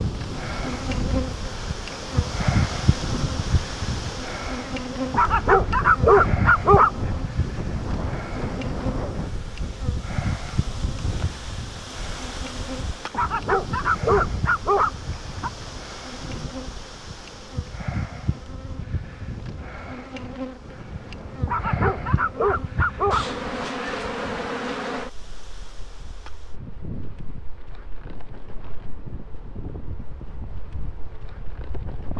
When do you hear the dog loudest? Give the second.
6 s.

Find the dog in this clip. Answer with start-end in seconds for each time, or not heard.
5.1-7.3, 13.1-15.5, 21.4-23.6.